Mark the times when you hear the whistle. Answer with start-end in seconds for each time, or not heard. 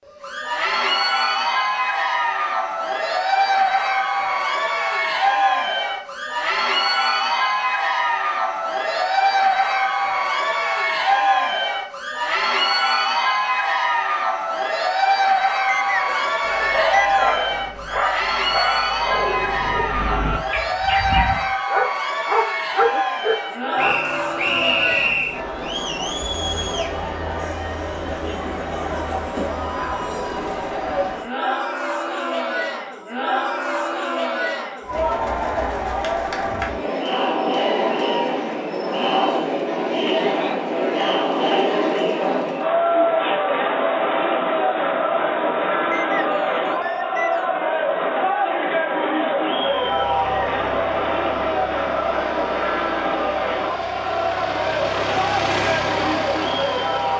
15.7-17.5, 23.8-25.4, 45.9-47.5.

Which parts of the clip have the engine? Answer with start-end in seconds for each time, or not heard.
49.5-57.1.